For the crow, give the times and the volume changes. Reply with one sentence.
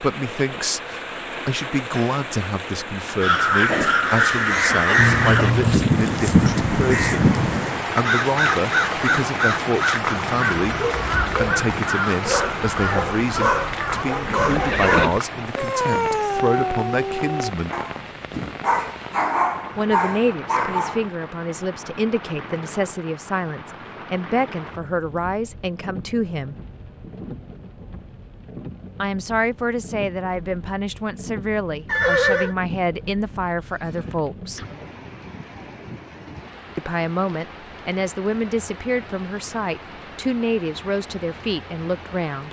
You can hear the crow from 3.2 to 14.1 s, getting quieter.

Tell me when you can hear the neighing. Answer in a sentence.
The neighing can be heard from 5.0 to 5.9 s, from 14.2 to 15.1 s and from 31.9 to 32.5 s.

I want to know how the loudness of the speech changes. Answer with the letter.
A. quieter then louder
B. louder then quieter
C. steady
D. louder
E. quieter
C.